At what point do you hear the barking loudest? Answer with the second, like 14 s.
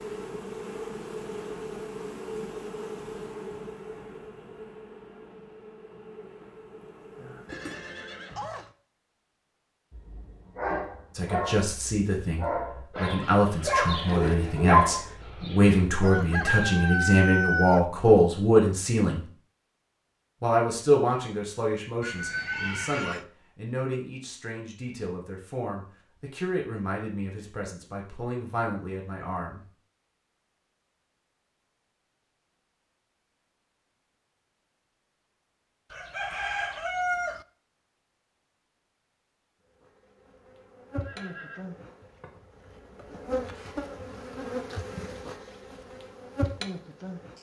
15 s.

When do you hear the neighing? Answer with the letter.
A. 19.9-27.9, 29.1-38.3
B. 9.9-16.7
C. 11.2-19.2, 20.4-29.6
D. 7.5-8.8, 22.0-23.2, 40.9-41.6
D.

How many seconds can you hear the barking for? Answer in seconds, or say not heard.
7 s.